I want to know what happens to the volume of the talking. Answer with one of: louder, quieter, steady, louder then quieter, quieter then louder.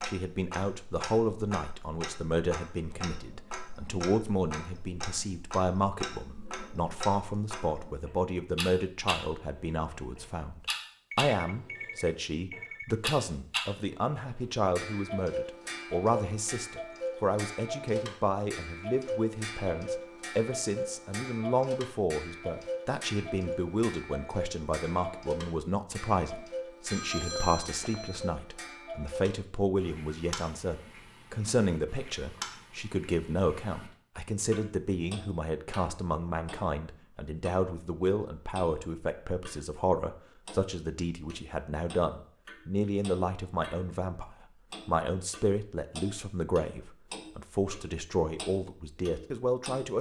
steady.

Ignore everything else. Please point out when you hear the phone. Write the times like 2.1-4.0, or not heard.
11.1-12.9, 26.9-28.3.